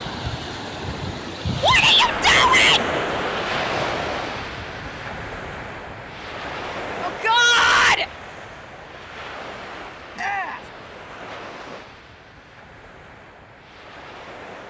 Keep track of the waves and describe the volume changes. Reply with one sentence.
The volume of the waves goes down.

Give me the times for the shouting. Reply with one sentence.
You can hear the shouting from 1.6 to 2.9 s, from 7.0 to 8.1 s and from 10.2 to 10.6 s.